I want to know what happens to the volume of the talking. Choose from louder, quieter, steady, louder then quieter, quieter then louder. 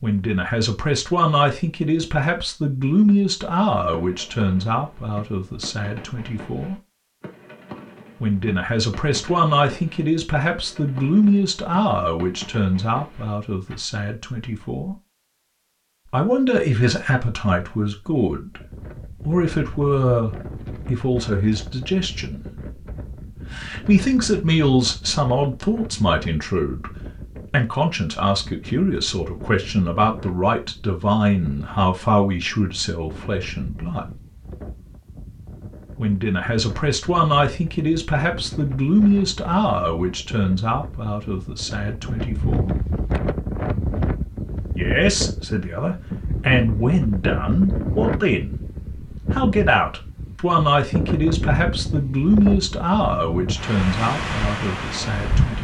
steady.